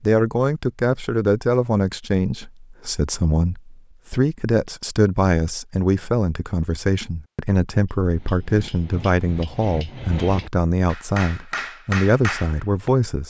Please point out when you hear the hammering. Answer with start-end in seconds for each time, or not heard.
8.1-12.9.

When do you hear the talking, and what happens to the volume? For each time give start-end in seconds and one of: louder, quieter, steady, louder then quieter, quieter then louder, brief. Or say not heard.
0.0-13.2 steady.